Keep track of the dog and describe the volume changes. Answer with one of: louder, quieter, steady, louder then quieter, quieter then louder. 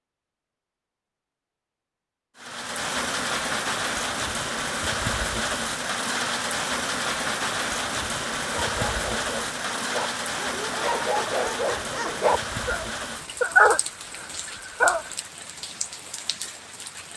louder.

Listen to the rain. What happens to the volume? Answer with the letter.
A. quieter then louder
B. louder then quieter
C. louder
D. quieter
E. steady
D.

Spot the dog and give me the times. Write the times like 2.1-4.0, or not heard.
8.5-15.1.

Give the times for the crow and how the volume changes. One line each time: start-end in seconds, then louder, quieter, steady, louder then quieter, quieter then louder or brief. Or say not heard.
not heard.